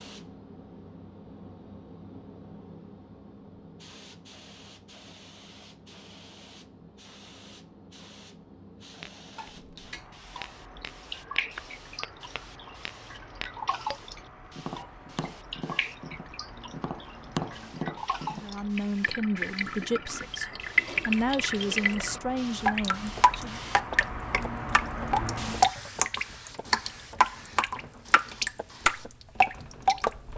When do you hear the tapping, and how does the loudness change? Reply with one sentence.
You can hear the tapping from 9.0 to 18.4 s, getting louder.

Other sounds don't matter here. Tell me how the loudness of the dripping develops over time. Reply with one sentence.
The loudness of the dripping goes up.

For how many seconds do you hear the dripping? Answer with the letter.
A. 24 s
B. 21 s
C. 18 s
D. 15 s
B.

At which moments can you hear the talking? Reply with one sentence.
The talking can be heard from 18.3 to 23.6 s.